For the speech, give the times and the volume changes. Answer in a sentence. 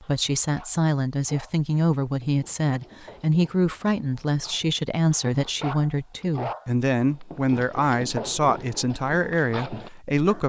The speech can be heard from 0.0 to 10.4 s, at a steady volume.